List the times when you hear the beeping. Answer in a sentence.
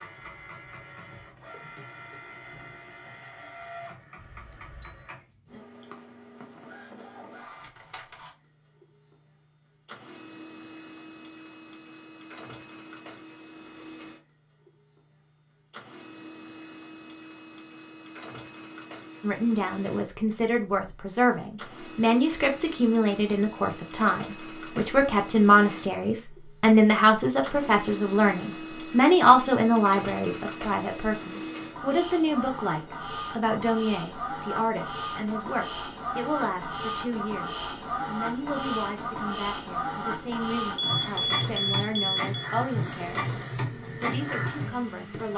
You can hear the beeping from 4.2 to 5.0 s and from 40.8 to 42.3 s.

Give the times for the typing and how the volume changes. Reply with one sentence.
The typing can't be heard in this clip.